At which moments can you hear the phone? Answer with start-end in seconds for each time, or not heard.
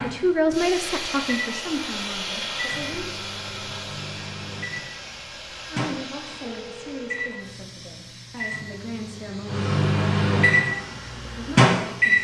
6.4-7.4.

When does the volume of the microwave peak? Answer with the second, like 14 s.
12 s.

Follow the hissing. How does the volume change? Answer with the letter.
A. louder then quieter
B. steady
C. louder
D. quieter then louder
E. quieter
E.